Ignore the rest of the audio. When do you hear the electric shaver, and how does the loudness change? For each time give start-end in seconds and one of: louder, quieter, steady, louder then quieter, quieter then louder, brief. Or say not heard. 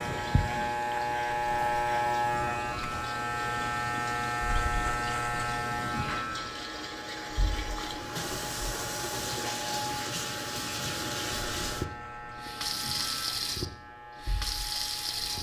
0.0-15.3 quieter.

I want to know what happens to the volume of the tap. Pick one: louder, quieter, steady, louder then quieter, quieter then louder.
louder.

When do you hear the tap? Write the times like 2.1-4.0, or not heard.
0.0-15.3.